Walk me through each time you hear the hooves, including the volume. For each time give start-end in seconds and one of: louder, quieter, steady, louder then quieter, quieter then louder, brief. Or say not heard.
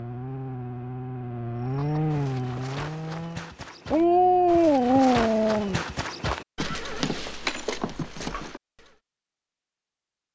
1.6-8.9 louder.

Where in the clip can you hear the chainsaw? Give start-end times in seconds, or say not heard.
0.0-3.5.